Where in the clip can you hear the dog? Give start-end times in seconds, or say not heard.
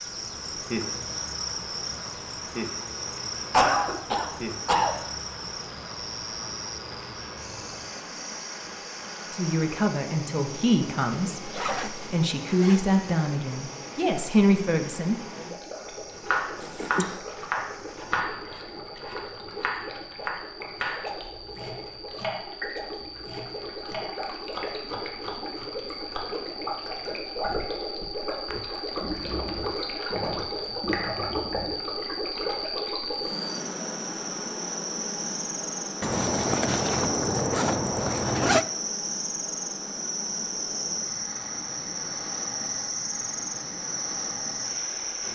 not heard.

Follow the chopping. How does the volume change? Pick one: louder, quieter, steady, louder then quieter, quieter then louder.
quieter.